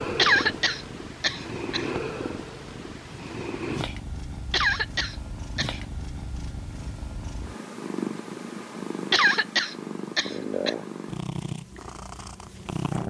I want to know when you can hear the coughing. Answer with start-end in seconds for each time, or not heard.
0.1-1.9, 4.5-5.8, 9.1-10.8.